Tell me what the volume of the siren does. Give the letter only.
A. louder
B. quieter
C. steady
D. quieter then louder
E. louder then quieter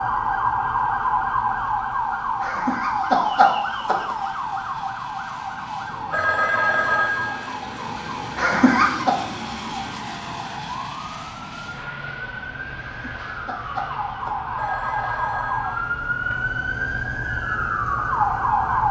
D.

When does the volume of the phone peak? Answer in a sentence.
The loudest moment of the phone is at 7 seconds.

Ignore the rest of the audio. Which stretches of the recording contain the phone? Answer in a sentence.
The phone can be heard from 6.1 to 7.5 s and from 14.6 to 16.4 s.